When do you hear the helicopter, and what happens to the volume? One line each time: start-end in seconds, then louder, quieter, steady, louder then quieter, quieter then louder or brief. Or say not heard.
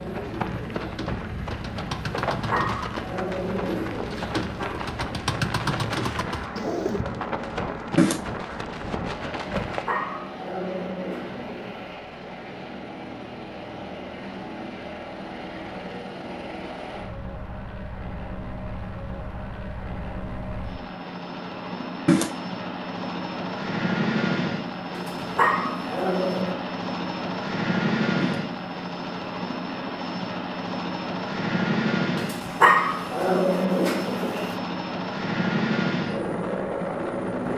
0.0-37.5 louder.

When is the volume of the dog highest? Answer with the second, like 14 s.
33 s.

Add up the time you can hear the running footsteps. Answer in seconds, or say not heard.
10 s.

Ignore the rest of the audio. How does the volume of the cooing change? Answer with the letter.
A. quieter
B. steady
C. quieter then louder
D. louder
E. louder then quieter
D.